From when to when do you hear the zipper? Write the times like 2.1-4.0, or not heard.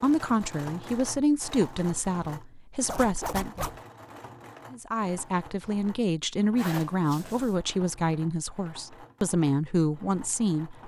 2.9-3.8, 6.5-7.5.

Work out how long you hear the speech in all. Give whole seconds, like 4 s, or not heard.
10 s.